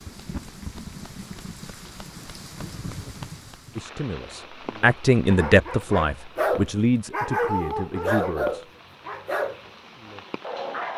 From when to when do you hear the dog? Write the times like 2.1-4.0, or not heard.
4.2-10.9.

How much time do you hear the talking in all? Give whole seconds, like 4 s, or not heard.
5 s.